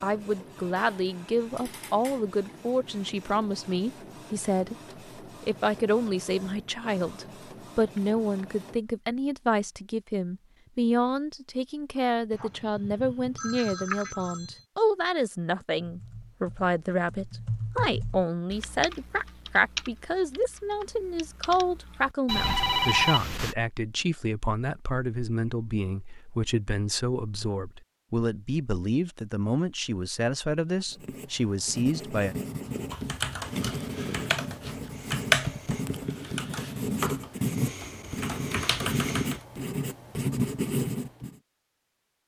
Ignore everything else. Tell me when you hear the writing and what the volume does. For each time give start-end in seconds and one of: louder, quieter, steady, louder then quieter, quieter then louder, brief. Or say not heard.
30.9-41.4 louder.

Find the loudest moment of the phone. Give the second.
23 s.